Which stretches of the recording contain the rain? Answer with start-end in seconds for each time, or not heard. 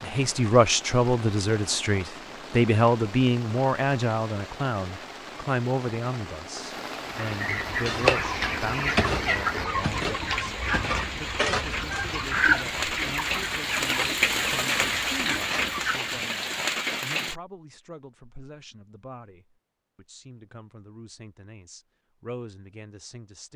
0.0-17.4.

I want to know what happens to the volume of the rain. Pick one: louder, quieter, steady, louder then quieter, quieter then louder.
louder.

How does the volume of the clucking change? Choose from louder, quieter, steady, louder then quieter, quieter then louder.
quieter.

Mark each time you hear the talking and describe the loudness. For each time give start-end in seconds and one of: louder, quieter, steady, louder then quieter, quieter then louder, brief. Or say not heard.
0.0-23.5 quieter.